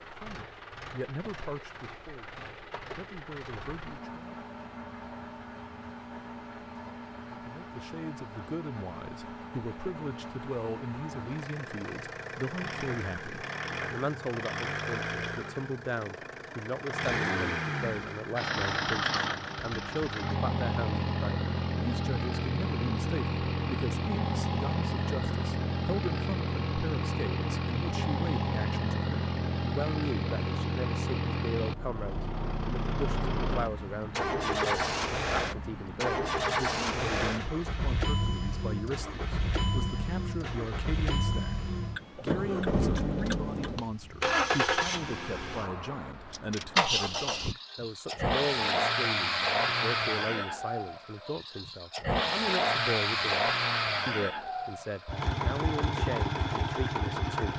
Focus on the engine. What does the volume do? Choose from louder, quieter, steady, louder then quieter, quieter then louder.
louder.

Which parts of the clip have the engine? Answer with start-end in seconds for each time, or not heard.
0.0-57.5.